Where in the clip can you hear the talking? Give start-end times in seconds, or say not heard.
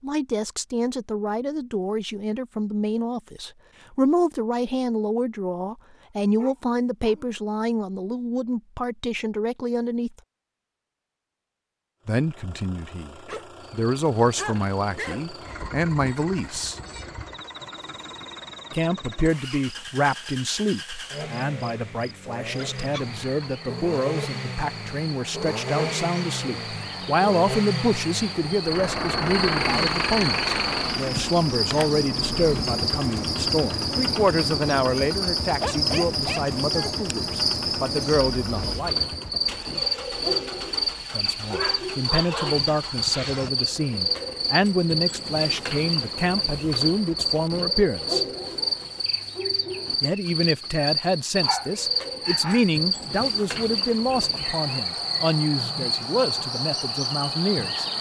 0.0-10.1, 12.1-16.8, 18.7-39.0, 41.1-48.2, 50.0-57.9.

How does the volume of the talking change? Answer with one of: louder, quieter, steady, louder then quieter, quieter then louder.
steady.